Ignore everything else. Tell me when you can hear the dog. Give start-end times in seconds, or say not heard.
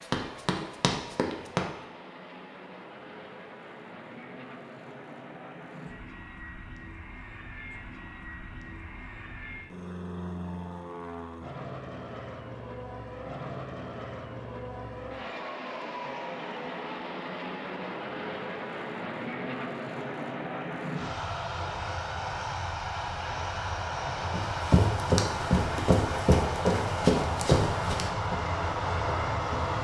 not heard.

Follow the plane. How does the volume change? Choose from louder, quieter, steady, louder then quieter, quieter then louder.
louder.